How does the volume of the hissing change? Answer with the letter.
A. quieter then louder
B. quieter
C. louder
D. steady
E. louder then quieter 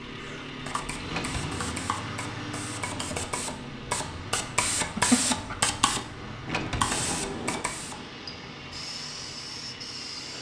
E.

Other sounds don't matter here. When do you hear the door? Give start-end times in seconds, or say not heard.
1.1-1.8, 6.5-7.7.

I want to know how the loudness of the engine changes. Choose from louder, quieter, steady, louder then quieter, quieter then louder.
quieter.